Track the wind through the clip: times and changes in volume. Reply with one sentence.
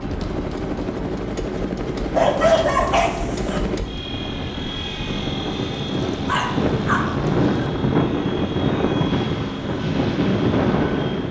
You can hear the wind from 0.0 to 11.2 s, getting louder.